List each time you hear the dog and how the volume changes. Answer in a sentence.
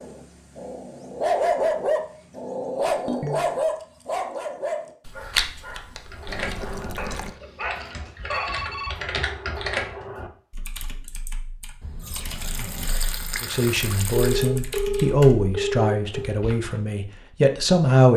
The dog can be heard from 0.0 to 8.7 s, getting quieter.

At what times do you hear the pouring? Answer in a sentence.
The pouring can be heard from 6.2 to 7.3 s and from 11.8 to 14.5 s.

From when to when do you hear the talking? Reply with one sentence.
You can hear the talking from 13.4 to 18.1 s.